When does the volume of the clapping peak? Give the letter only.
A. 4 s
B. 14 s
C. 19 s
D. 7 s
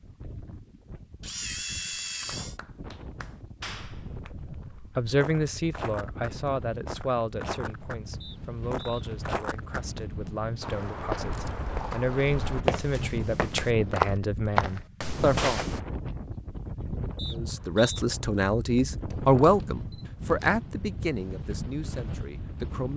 A.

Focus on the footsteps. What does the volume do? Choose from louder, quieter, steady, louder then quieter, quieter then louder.
louder.